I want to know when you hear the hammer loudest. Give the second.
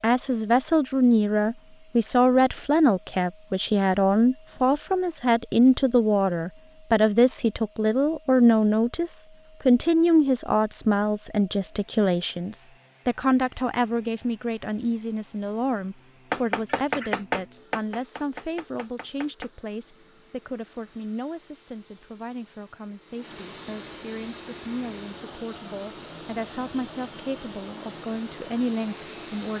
17 s.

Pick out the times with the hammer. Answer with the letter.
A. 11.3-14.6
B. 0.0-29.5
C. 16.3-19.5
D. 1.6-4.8
C.